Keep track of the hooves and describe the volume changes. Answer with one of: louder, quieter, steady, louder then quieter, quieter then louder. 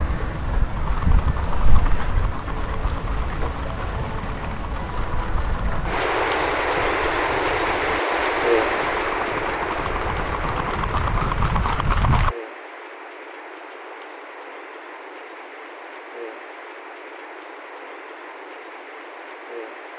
louder.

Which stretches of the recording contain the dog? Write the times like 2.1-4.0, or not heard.
not heard.